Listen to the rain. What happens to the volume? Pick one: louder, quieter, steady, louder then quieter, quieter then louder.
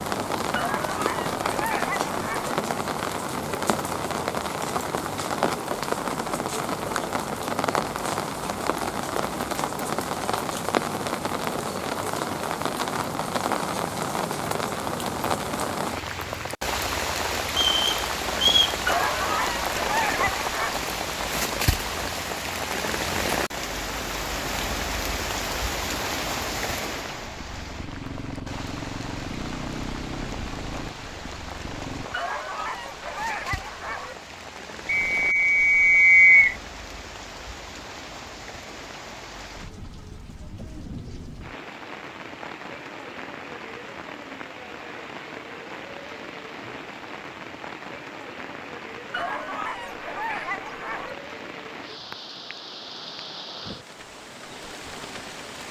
quieter.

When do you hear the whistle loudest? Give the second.
36 s.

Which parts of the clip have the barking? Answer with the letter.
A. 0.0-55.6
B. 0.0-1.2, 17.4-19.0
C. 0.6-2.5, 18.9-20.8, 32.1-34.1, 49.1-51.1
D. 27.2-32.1
C.